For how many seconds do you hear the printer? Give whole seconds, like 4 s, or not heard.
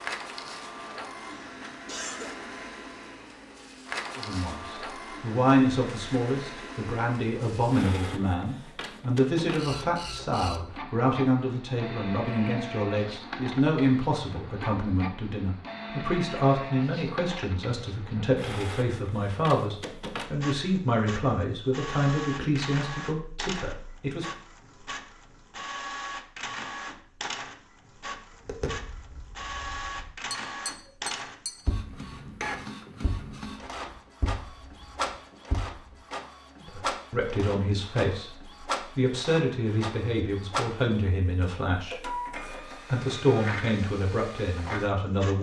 45 s.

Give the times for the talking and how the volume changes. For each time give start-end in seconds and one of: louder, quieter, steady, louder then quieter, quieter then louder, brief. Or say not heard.
4.2-24.2 steady
36.6-45.3 steady.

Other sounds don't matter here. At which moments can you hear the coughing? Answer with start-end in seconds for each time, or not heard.
1.2-2.4.